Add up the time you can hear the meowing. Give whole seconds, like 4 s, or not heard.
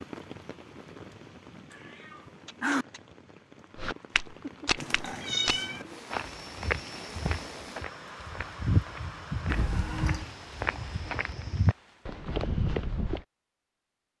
3 s.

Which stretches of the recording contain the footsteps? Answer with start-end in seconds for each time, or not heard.
3.8-13.2.